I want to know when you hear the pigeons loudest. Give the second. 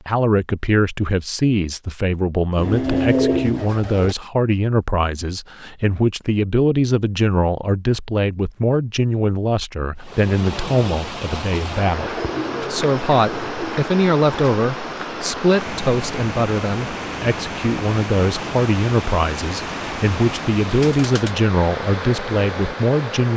3 s.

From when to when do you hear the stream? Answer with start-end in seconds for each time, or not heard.
9.9-23.3.